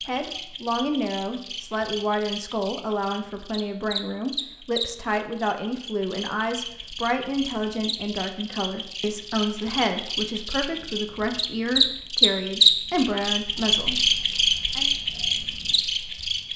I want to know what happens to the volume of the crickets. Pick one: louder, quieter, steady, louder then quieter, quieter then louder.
louder.